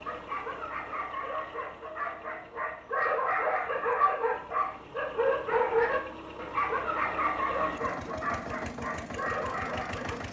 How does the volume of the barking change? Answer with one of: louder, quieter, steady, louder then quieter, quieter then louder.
louder then quieter.